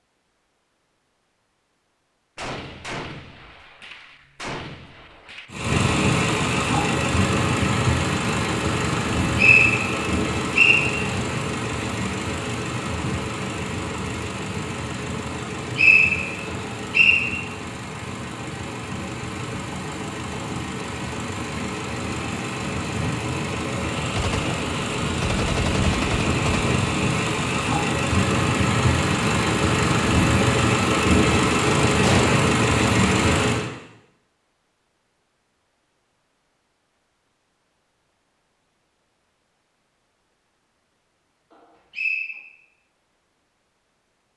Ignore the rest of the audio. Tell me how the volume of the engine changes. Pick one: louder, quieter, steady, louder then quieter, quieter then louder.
quieter then louder.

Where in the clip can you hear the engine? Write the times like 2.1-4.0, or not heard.
5.5-33.7.